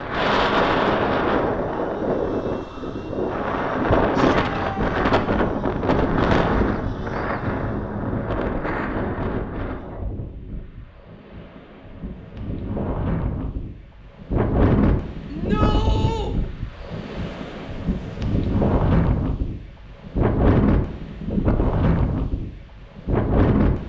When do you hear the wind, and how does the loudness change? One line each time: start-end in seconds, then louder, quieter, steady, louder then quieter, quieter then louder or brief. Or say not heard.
0.0-23.8 quieter then louder.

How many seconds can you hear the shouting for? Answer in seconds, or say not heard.
2 s.